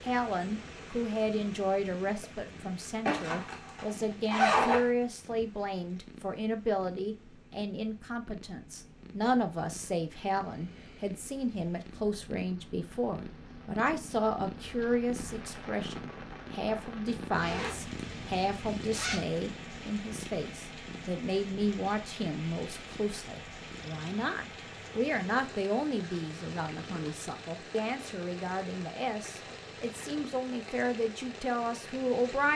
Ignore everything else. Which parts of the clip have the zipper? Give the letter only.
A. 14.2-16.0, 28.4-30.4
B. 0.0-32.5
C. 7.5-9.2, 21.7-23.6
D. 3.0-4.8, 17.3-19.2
D.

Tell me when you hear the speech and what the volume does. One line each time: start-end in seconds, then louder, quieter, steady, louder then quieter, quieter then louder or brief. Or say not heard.
0.0-32.5 steady.